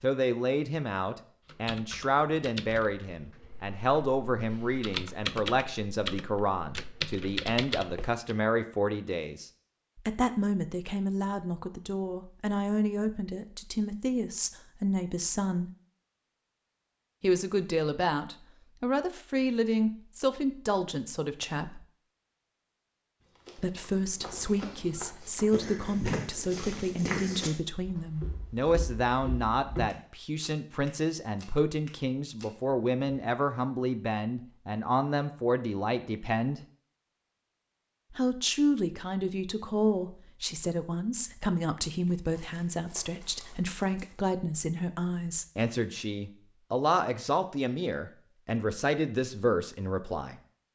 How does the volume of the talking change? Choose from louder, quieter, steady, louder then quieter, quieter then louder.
steady.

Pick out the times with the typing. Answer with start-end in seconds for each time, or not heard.
1.4-8.3.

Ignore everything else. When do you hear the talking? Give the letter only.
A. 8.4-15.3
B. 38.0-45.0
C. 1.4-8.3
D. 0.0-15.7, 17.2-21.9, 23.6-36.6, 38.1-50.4
D.